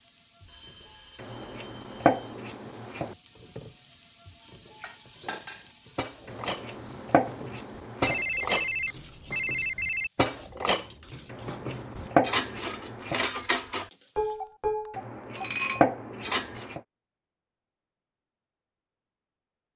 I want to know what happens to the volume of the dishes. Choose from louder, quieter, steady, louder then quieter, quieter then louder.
louder.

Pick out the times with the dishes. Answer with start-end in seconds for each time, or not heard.
4.8-16.6.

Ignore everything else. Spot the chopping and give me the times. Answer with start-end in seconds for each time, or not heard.
1.1-3.1, 6.2-8.2, 11.2-13.2, 14.9-16.8.